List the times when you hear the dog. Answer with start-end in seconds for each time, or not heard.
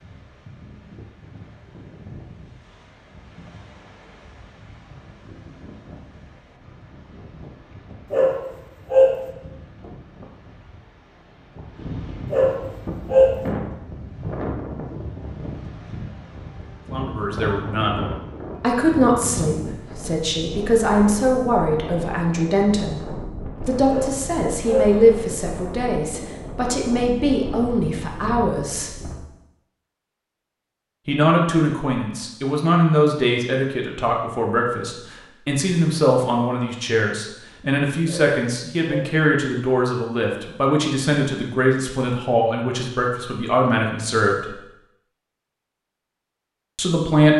8.1-9.2, 12.3-13.4, 23.9-25.0, 38.0-39.2.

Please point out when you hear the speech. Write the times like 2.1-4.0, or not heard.
16.9-18.0, 18.6-29.1, 31.1-44.5, 46.8-47.3.